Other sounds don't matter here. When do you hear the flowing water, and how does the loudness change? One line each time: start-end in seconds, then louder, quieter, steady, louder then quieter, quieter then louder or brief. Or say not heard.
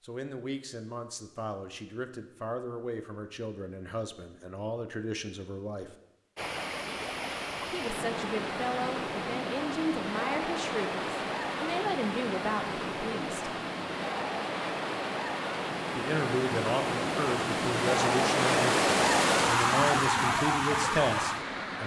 6.3-21.8 louder.